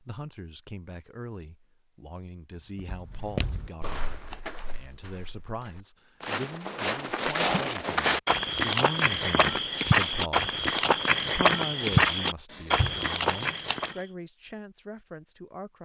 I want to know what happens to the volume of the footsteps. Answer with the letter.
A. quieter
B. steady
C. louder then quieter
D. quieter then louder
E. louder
E.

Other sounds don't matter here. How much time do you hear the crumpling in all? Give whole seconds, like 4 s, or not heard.
3 s.